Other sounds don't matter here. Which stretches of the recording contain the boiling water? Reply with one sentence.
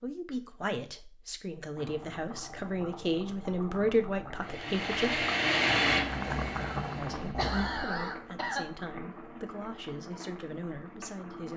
The boiling water can be heard from 1.8 to 11.5 s.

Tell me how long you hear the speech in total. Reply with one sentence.
You can hear the speech for 10 seconds altogether.